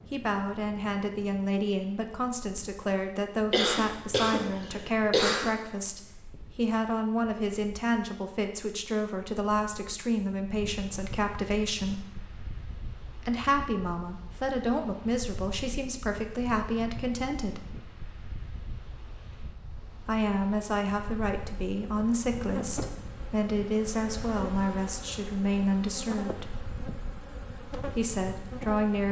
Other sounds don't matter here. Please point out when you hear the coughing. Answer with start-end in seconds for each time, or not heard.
3.5-5.5.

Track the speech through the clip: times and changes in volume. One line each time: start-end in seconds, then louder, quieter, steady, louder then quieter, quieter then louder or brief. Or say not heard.
0.1-12.1 steady
13.2-17.7 steady
20.0-26.6 steady
27.8-29.0 brief.